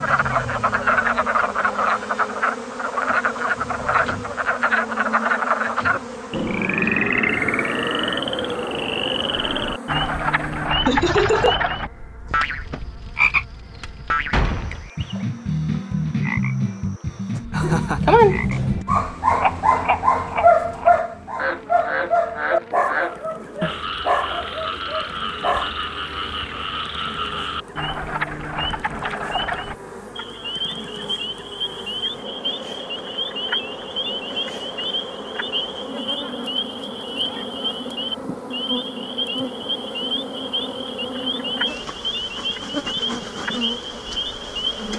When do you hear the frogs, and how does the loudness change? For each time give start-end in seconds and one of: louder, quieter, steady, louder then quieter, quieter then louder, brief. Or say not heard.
0.0-44.9 quieter.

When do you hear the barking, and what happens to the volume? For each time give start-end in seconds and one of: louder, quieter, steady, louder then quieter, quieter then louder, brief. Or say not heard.
17.6-25.7 quieter.